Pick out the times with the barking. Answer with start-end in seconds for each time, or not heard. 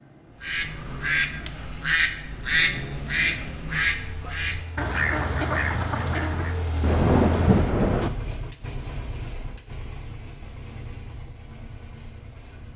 not heard.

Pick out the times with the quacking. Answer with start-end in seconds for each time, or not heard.
0.4-6.5.